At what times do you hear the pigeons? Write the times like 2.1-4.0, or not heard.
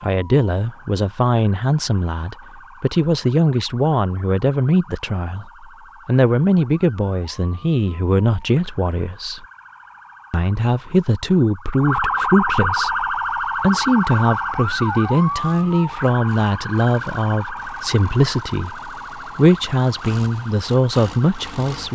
not heard.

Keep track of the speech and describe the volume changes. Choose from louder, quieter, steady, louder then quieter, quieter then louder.
steady.